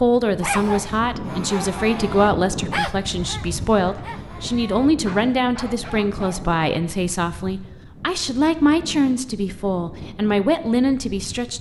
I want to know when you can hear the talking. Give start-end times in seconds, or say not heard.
0.0-11.5.